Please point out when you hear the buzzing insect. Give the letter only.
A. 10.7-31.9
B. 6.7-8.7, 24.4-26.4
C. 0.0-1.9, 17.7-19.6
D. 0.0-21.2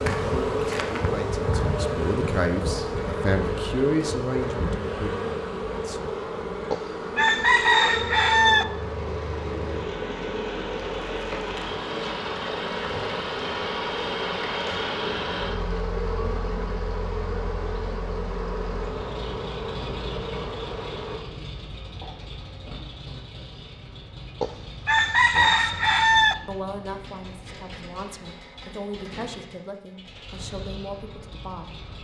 D.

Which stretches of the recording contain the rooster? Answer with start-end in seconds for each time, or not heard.
6.7-8.7, 24.4-26.4.